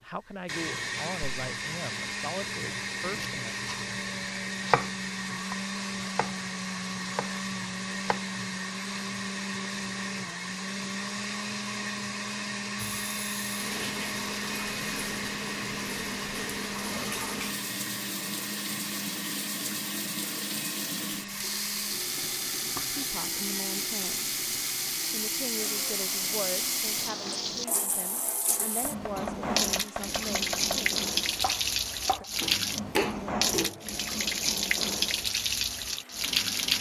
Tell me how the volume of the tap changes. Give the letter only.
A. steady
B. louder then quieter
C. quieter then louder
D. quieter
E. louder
E.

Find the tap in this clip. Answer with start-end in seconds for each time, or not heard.
12.8-36.7.